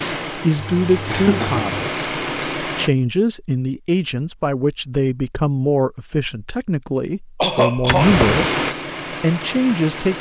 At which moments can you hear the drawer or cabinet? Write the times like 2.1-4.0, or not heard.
7.8-8.4.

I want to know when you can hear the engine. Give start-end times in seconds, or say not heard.
0.0-2.9, 8.0-10.1.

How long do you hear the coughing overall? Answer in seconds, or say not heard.
2 s.